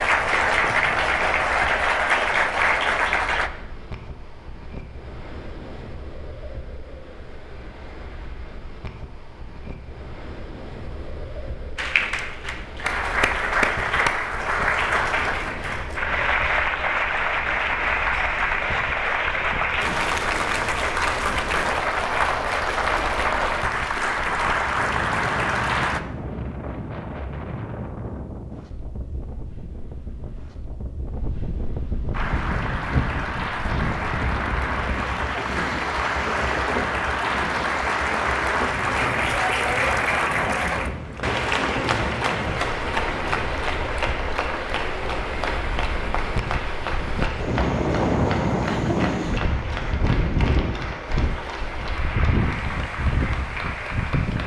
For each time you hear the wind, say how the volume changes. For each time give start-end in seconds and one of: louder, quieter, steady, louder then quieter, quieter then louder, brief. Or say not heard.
0.0-54.4 louder.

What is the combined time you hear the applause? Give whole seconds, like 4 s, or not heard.
40 s.